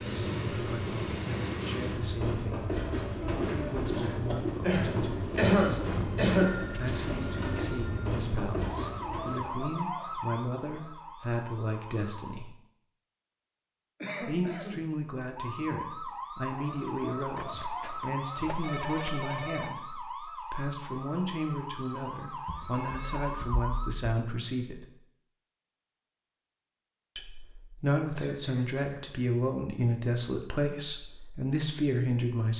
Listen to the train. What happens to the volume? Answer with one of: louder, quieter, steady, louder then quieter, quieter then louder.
steady.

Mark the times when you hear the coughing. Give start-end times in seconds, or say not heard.
4.6-6.7, 14.0-14.8, 28.1-29.2.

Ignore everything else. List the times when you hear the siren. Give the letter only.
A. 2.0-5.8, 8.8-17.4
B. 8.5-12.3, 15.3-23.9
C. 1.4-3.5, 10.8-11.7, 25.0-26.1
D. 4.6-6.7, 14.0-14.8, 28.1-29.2
B.